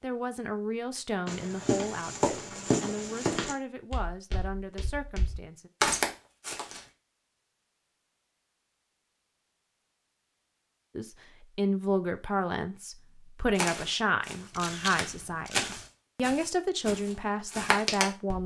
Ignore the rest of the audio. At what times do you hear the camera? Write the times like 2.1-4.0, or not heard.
14.5-15.9.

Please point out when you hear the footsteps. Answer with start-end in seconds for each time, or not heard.
1.2-6.8, 13.6-18.4.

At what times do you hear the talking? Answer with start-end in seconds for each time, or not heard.
0.0-5.7, 10.9-18.4.